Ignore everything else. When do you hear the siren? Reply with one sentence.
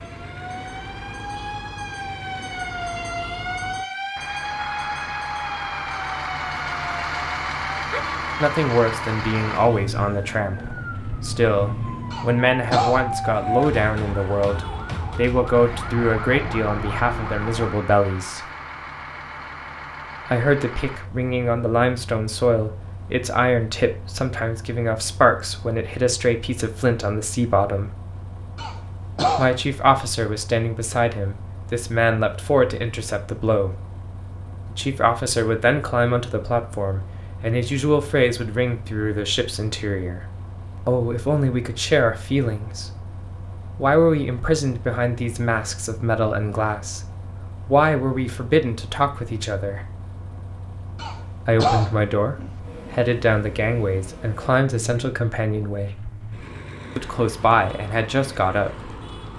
You can hear the siren from 0.0 to 17.8 s.